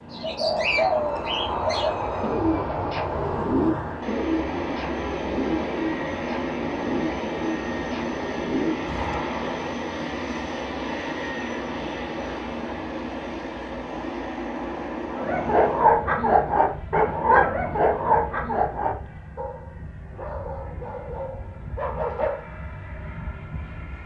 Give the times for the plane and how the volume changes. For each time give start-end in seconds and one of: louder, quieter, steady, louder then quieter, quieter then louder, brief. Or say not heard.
0.0-24.0 quieter.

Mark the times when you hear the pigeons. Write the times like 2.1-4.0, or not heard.
0.1-9.2.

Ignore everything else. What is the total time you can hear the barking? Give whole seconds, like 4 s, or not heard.
7 s.